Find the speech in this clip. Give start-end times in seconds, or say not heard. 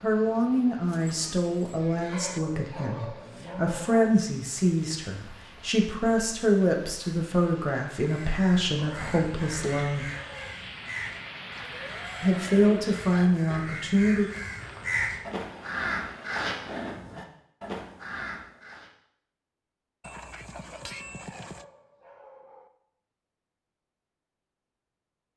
0.0-10.1, 12.2-14.3.